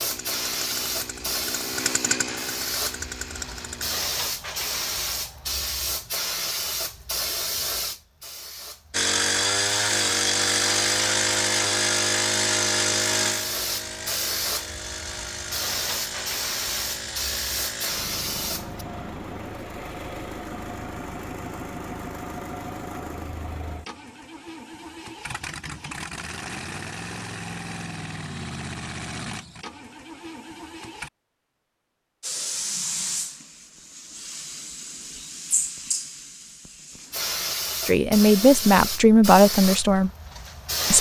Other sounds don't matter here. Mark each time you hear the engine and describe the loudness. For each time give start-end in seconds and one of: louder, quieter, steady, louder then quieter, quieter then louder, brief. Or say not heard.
0.0-4.0 louder then quieter
8.9-31.1 quieter.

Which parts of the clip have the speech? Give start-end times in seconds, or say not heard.
37.9-40.1.